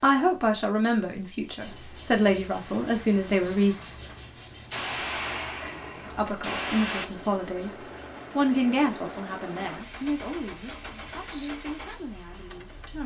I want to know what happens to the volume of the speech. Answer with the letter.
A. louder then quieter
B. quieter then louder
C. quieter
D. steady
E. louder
C.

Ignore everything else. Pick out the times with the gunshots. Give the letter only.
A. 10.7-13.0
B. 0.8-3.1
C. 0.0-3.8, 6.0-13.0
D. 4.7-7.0
D.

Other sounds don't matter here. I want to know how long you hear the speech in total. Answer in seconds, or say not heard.
11 s.